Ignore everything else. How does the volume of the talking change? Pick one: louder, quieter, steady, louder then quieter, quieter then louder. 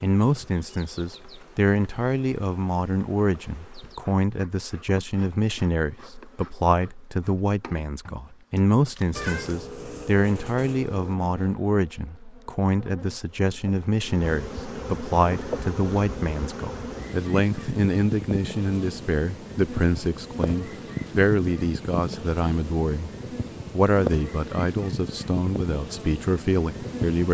steady.